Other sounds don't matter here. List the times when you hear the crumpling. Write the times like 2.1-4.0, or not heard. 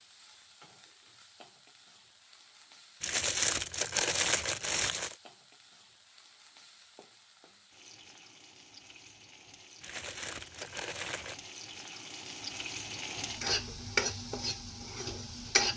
3.0-5.2, 9.8-11.3.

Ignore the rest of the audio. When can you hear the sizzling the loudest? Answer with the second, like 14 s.
14 s.